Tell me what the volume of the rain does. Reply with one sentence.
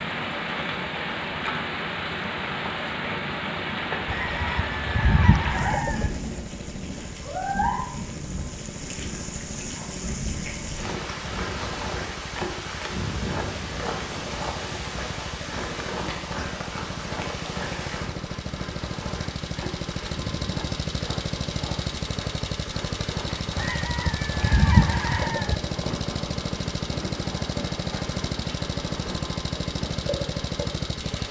The volume of the rain goes down.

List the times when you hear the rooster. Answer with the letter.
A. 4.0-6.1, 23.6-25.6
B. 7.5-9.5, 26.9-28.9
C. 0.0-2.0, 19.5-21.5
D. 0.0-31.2
A.